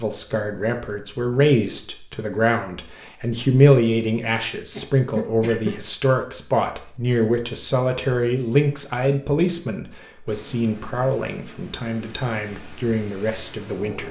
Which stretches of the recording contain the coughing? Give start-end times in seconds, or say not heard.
4.7-5.8.